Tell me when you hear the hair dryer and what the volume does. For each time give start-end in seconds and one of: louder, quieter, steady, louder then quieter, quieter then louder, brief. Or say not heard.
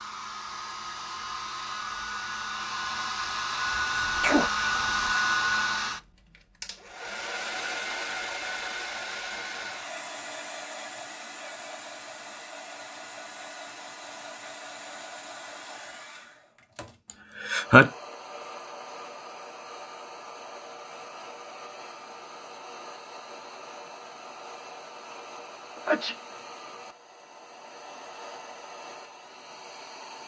0.0-30.2 quieter.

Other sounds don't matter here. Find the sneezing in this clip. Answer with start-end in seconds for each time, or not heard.
3.8-4.5, 17.1-17.9, 25.8-26.2.